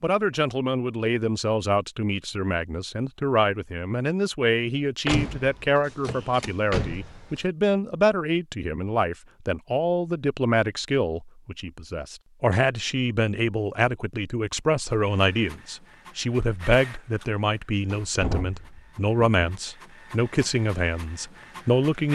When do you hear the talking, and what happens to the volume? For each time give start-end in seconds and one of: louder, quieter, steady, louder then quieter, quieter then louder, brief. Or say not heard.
0.0-22.1 steady.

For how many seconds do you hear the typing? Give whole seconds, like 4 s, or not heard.
not heard.